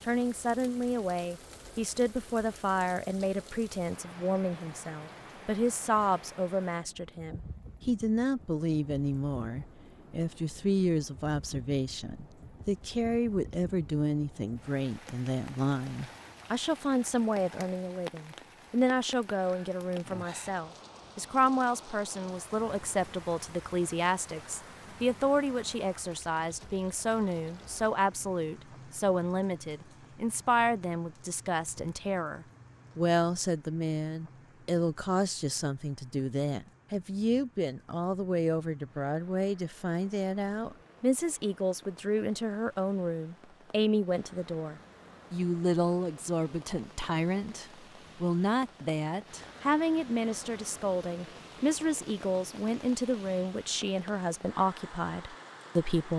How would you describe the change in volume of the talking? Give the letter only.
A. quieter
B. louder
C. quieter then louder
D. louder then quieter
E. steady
E.